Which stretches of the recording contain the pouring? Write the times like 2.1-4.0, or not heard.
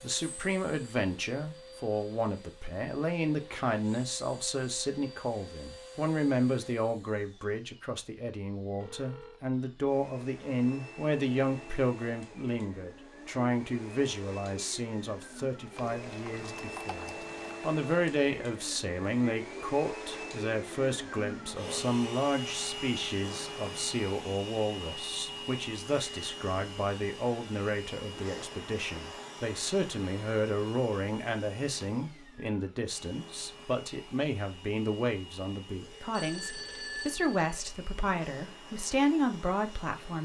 15.8-17.7.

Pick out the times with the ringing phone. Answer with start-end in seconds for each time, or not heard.
8.8-9.4, 35.8-37.5.